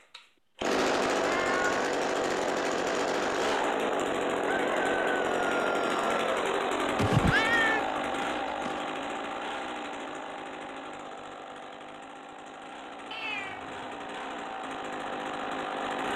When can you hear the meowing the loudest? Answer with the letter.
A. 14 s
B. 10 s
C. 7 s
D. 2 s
C.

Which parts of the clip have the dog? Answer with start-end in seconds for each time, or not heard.
not heard.